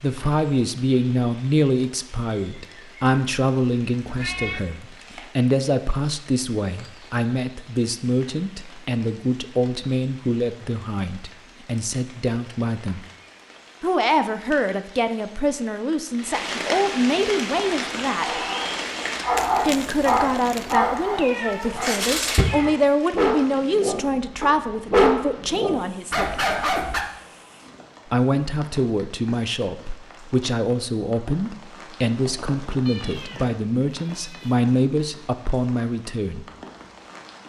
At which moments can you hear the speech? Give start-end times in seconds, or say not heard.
0.0-13.0, 13.8-18.4, 19.6-26.3, 28.1-36.5.